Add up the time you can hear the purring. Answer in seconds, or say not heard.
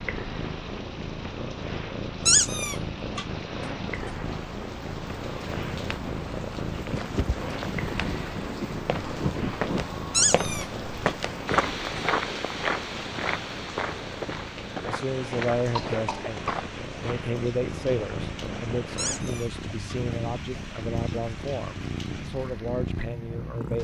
24 s.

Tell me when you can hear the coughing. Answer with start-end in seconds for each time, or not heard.
15.7-16.7.